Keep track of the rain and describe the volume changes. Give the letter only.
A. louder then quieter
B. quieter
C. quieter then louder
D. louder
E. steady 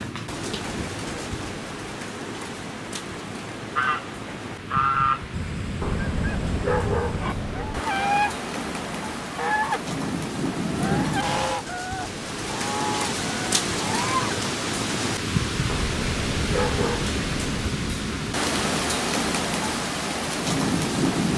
D.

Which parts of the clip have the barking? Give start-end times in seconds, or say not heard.
5.8-7.8, 15.7-17.7.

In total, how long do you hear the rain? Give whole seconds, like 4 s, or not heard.
21 s.